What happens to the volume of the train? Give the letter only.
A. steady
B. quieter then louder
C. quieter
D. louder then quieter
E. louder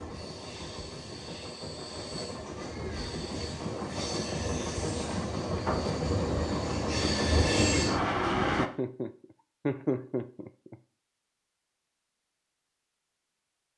E.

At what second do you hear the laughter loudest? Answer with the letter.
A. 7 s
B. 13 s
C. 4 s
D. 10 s
D.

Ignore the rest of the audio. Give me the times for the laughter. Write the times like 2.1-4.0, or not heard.
8.6-10.8.